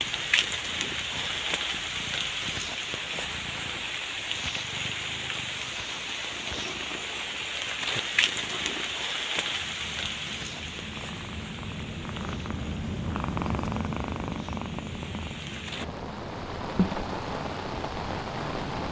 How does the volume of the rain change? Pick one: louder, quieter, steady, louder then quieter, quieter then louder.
quieter then louder.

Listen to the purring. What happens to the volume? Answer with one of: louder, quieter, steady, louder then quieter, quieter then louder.
louder.